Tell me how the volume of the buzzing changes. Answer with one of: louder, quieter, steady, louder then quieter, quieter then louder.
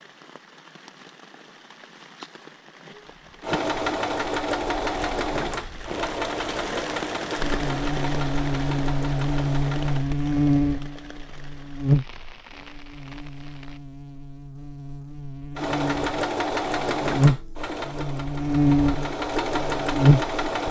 quieter then louder.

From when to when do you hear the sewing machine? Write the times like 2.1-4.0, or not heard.
3.4-10.1, 15.6-20.6.